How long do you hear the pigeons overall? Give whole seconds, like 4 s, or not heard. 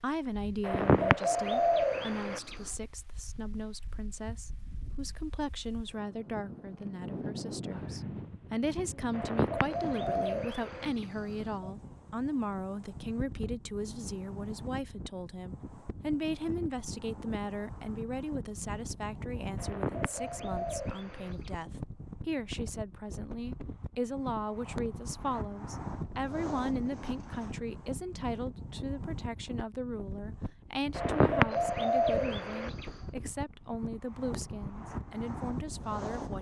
9 s.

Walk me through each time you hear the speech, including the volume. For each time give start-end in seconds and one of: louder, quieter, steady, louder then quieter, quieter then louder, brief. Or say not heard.
0.0-36.3 steady.